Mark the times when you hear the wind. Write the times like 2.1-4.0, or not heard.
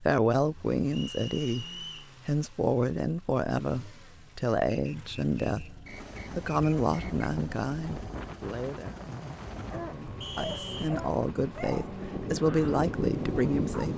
6.2-13.9.